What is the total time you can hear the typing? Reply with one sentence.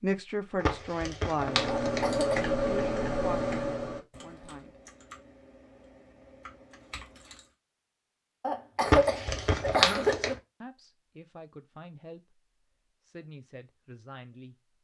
The typing can be heard for 6 seconds in total.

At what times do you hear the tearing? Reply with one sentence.
You can hear the tearing from 0.6 to 2.0 s and from 8.8 to 10.3 s.